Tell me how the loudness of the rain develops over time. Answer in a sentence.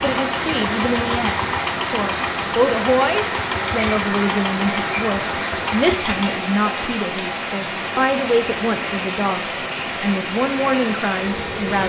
The volume of the rain stays about the same.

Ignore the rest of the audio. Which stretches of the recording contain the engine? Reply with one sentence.
You can hear the engine from 0.0 to 6.3 s.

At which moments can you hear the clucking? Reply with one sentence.
You can't hear the clucking here.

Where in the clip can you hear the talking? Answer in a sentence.
The talking can be heard from 0.0 to 11.8 s.